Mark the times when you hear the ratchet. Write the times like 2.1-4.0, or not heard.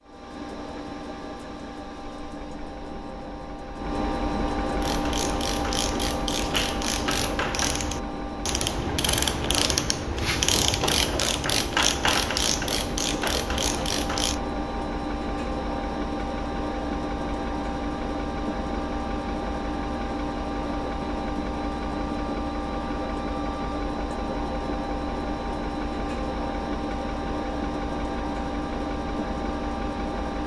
4.8-14.4.